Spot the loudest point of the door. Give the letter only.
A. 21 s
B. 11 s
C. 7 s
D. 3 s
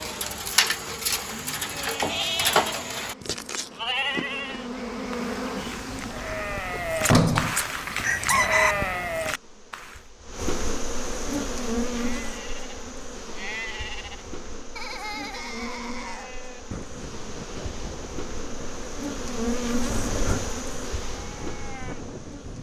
C.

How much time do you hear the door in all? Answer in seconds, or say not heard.
2 s.